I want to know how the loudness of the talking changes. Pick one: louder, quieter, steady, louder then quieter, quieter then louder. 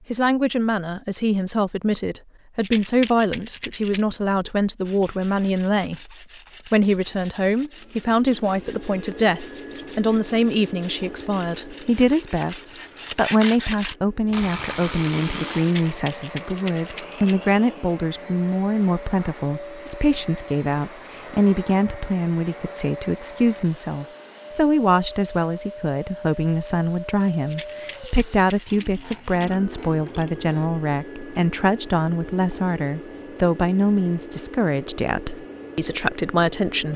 steady.